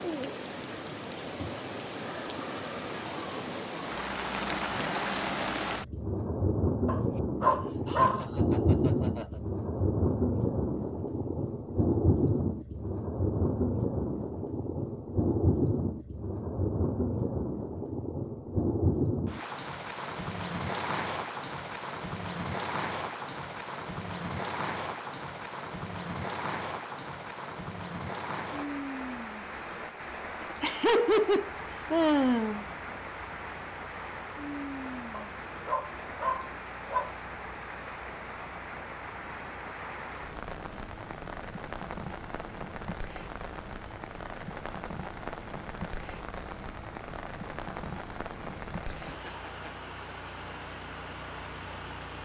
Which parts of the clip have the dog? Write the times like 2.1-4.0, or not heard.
6.8-8.2, 35.1-37.1.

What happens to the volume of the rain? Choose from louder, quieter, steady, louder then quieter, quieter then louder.
quieter.